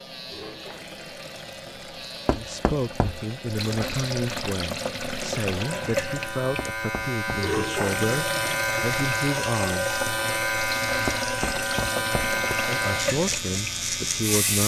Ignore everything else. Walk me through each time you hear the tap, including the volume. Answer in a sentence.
The tap can be heard from 0.1 to 14.6 s, getting louder.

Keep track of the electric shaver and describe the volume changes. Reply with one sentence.
The volume of the electric shaver goes up.